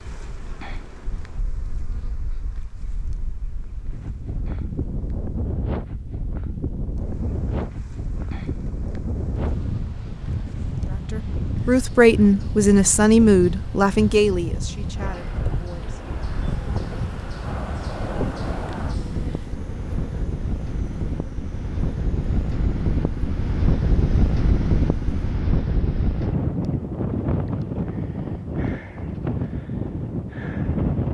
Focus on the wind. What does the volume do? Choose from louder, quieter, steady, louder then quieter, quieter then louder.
louder.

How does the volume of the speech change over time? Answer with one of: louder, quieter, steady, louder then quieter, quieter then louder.
quieter.